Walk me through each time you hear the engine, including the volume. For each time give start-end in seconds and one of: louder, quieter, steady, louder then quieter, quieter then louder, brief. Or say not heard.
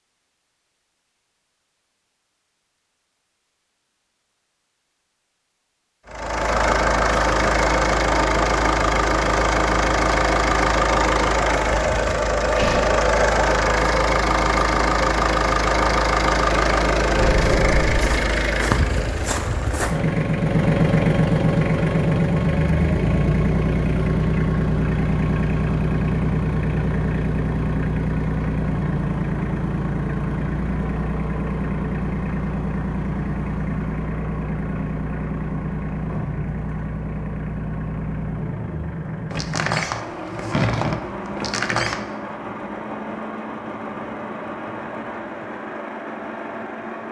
6.0-47.0 quieter.